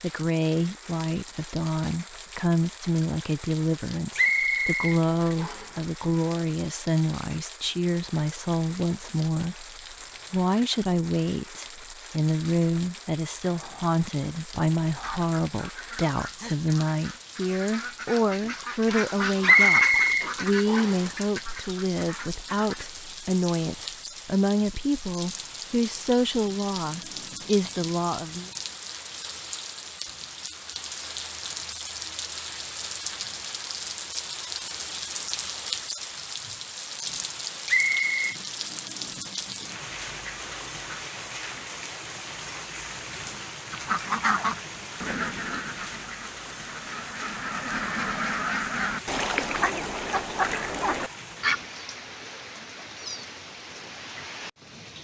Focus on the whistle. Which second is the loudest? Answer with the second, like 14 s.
20 s.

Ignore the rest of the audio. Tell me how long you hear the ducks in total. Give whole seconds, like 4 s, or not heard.
16 s.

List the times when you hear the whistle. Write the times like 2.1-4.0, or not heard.
4.2-5.8, 19.4-21.0, 37.6-38.4.